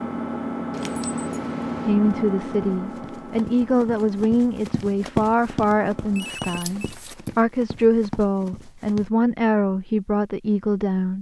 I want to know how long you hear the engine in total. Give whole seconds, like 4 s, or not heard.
6 s.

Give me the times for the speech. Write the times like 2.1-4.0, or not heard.
1.9-11.1.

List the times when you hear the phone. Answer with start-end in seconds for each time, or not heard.
6.1-6.8.